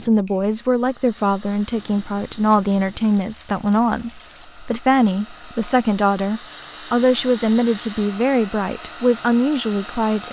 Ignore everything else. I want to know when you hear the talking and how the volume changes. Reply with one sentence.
The talking can be heard from 0.0 to 10.2 s, at a steady volume.